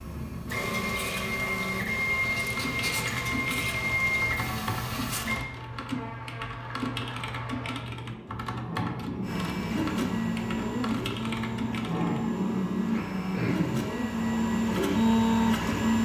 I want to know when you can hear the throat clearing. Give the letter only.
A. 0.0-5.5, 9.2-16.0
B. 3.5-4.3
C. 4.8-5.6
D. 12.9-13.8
D.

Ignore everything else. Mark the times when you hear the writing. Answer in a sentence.
You can't hear the writing here.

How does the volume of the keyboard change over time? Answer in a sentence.
The loudness of the keyboard stays about the same.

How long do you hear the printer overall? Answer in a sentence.
The printer can be heard for 12 seconds in total.